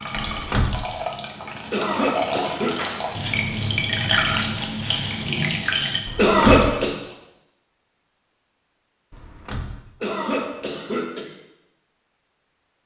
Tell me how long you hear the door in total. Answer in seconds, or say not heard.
2 s.